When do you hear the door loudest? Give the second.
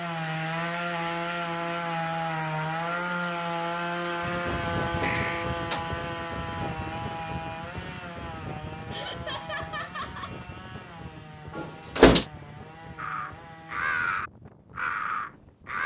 12 s.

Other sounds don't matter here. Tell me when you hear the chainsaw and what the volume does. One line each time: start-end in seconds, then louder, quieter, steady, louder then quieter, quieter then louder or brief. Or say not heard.
0.0-14.0 quieter.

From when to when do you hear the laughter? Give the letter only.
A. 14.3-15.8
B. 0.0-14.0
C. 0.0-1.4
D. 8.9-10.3
D.